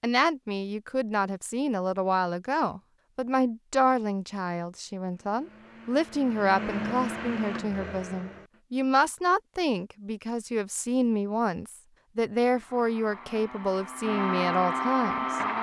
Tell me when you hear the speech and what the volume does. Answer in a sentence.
You can hear the speech from 0.0 to 15.4 s, at a steady volume.